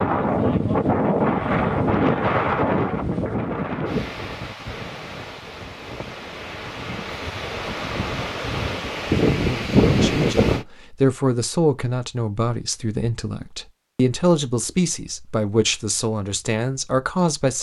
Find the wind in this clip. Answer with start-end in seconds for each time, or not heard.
0.0-10.7.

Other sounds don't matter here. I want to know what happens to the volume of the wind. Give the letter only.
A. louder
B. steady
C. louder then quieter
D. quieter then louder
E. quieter
D.